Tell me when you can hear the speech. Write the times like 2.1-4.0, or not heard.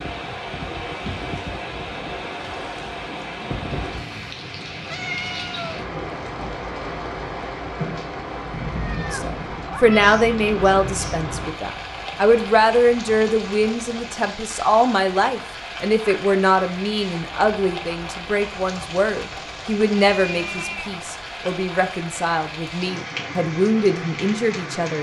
9.1-24.9.